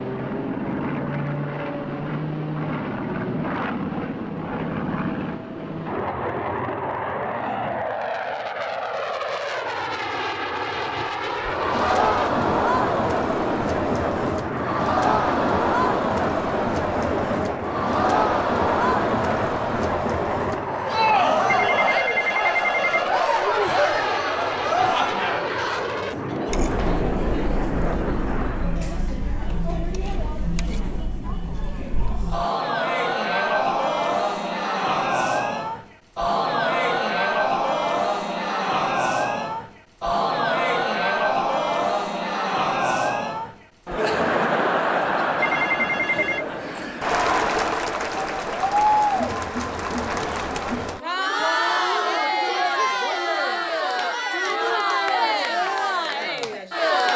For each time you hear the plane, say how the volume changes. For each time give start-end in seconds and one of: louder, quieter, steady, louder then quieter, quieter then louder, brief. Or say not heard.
0.0-28.9 steady.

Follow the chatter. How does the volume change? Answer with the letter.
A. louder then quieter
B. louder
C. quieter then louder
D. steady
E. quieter
D.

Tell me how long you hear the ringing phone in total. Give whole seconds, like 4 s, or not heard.
3 s.